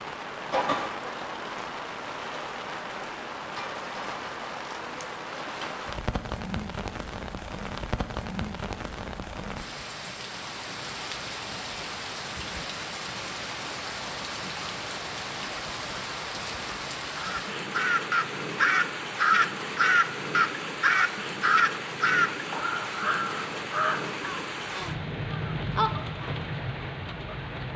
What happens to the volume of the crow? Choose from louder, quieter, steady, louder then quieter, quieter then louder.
quieter.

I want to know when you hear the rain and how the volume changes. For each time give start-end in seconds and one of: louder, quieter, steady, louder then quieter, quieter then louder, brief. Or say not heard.
0.0-27.7 steady.